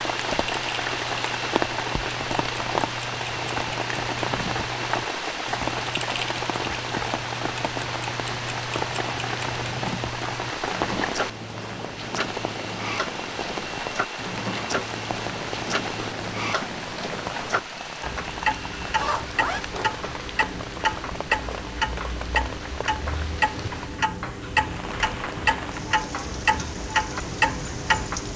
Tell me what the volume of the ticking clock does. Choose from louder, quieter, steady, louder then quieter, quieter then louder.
louder.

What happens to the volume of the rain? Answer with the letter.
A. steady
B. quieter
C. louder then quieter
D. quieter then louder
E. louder
B.